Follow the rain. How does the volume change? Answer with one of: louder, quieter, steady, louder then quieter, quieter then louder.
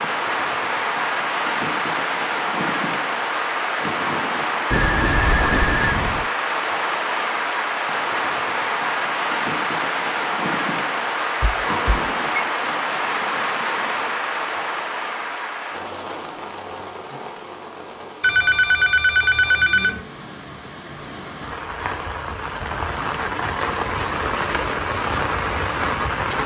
quieter then louder.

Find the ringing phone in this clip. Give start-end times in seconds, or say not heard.
4.7-6.2, 11.4-12.4, 18.2-20.0.